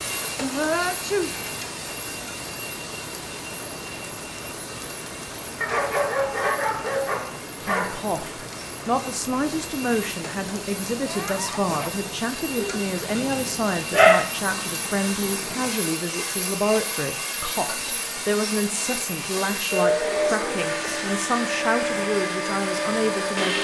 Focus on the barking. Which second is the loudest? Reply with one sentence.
The loudest moment of the barking is at 14 seconds.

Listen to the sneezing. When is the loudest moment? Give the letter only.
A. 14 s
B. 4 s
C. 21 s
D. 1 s
D.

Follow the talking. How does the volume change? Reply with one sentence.
The volume of the talking stays about the same.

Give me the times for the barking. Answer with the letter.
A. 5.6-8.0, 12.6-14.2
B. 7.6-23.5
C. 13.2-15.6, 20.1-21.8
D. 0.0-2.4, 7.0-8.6
A.